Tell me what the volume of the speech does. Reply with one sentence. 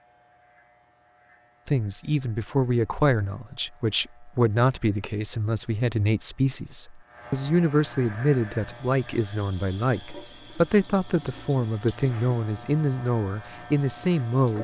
The volume of the speech stays about the same.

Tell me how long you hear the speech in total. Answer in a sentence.
You can hear the speech for 13 seconds altogether.